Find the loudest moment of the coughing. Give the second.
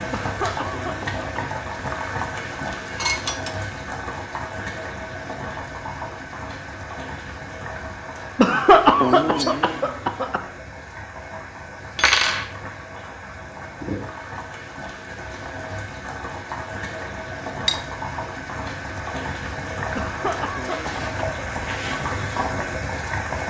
9 s.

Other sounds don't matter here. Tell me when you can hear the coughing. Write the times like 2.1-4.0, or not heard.
0.1-1.6, 8.3-10.4, 19.9-21.8.